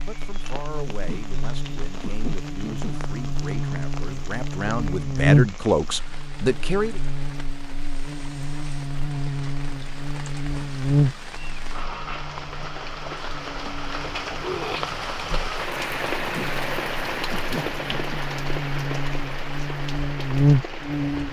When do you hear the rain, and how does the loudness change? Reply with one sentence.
The rain can be heard from 0.0 to 21.2 s, getting louder.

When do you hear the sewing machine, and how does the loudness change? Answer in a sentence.
You can't hear the sewing machine here.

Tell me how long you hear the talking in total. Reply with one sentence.
You can hear the talking for 7 seconds altogether.